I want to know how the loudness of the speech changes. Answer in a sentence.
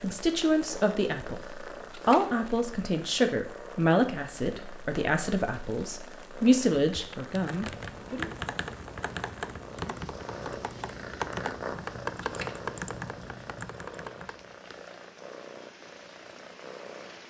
The volume of the speech stays about the same.